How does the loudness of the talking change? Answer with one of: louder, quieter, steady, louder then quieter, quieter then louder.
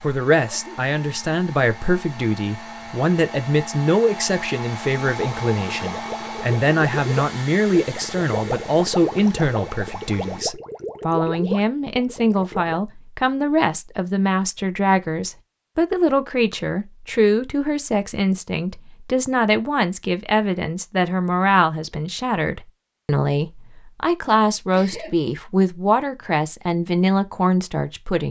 steady.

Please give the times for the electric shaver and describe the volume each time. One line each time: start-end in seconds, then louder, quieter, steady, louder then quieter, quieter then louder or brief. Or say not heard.
not heard.